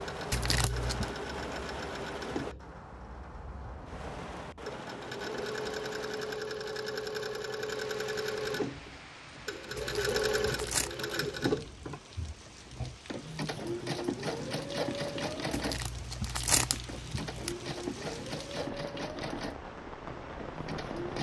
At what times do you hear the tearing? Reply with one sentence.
You can hear the tearing from 0.3 to 1.1 s, from 9.8 to 10.9 s and from 15.5 to 17.6 s.